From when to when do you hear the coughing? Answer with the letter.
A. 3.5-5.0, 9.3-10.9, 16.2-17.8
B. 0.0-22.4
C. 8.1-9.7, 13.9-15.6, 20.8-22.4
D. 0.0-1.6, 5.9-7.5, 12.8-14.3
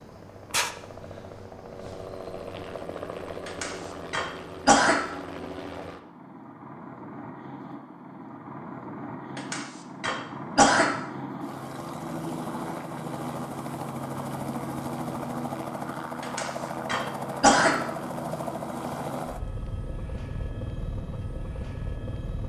A.